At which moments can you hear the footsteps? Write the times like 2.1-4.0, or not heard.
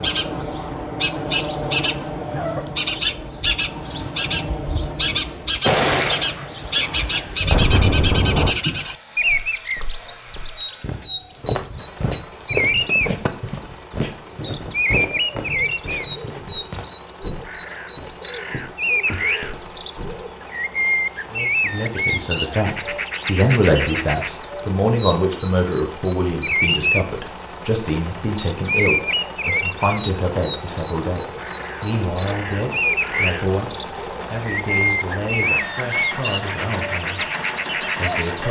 9.2-20.3.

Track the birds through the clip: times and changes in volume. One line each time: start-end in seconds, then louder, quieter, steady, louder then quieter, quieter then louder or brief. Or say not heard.
0.0-38.4 steady.